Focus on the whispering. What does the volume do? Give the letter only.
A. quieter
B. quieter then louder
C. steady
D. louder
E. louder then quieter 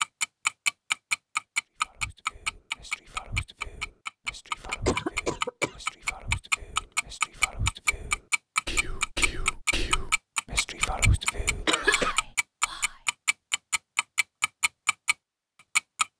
D.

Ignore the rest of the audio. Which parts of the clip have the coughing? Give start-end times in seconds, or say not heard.
4.6-5.8, 11.7-12.2.